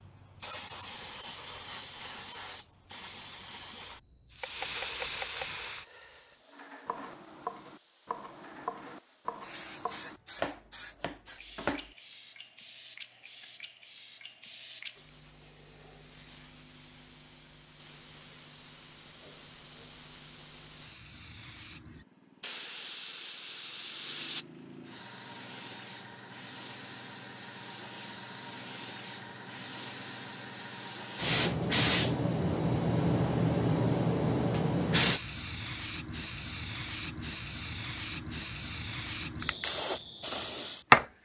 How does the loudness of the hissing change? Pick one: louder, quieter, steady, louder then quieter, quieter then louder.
quieter then louder.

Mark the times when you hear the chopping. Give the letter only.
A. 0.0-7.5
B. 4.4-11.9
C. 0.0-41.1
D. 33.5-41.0
B.